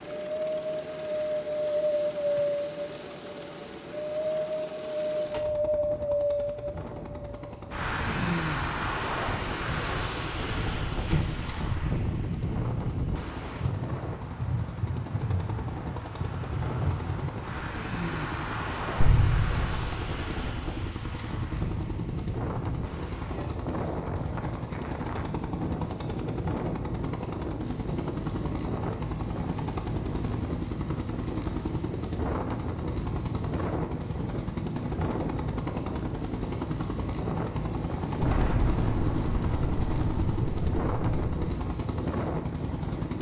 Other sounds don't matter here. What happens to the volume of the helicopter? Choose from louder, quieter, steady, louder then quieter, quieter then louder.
louder.